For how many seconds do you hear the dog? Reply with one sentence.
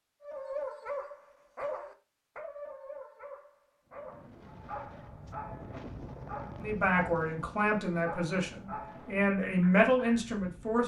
You can hear the dog for 10 seconds altogether.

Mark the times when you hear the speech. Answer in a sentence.
You can hear the speech from 6.6 to 10.8 s.